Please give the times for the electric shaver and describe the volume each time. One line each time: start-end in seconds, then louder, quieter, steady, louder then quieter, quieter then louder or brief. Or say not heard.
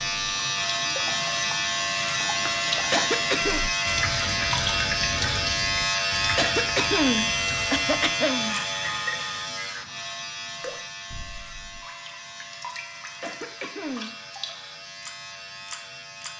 0.0-16.3 quieter.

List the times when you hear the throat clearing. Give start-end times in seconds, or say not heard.
2.9-3.6, 6.3-8.6, 13.2-14.2.